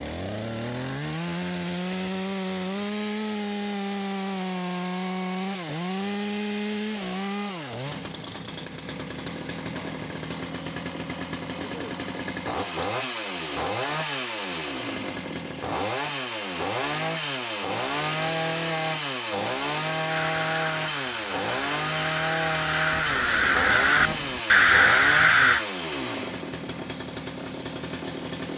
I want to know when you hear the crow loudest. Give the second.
25 s.